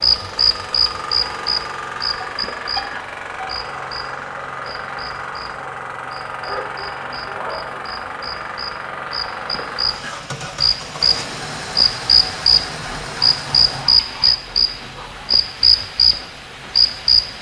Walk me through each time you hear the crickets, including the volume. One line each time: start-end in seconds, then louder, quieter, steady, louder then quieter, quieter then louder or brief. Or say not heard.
0.0-17.3 quieter then louder.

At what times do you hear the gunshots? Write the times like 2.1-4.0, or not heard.
not heard.